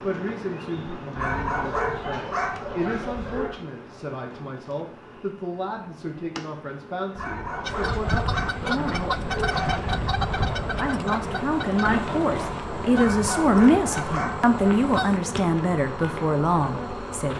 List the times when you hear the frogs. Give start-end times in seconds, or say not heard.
not heard.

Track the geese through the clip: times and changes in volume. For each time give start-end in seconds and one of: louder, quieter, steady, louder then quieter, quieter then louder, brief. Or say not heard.
7.7-15.2 quieter.